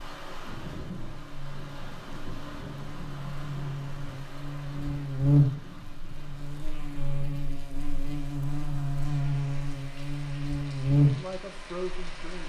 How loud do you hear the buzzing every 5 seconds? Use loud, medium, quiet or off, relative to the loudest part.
quiet, loud, loud.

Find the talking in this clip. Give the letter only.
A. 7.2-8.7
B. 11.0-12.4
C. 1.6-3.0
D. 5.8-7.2
B.